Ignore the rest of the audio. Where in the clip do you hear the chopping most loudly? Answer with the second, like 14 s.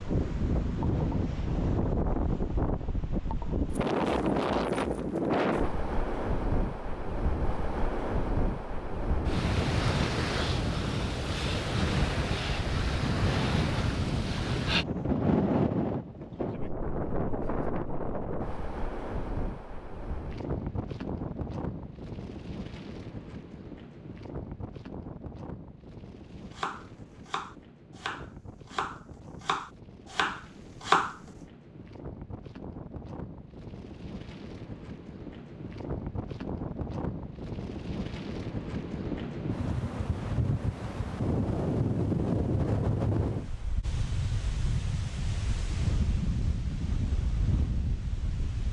31 s.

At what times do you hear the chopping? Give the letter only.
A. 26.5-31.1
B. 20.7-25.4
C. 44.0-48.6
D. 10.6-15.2
A.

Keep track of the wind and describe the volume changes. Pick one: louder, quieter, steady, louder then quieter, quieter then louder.
quieter then louder.